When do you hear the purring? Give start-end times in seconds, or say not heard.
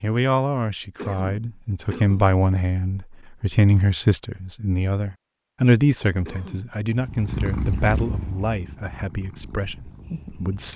6.9-10.7.